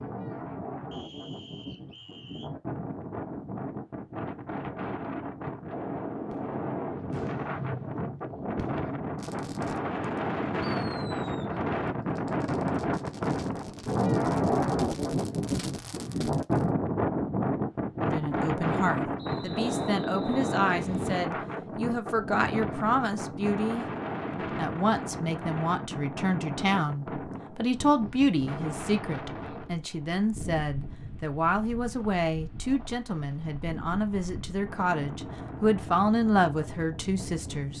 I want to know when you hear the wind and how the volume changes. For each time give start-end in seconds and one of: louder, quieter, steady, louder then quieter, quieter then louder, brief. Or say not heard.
0.0-37.7 louder then quieter.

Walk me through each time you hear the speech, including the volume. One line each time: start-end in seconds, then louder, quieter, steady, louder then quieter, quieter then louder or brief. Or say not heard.
18.0-37.7 steady.